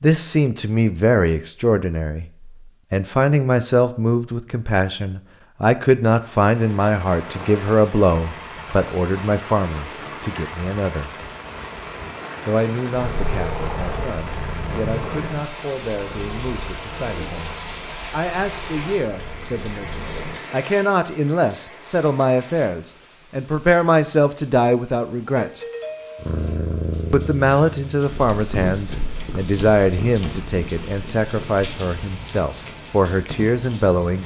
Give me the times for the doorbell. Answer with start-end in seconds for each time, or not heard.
25.2-26.2.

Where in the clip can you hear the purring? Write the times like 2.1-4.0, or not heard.
12.9-20.4, 26.1-31.6.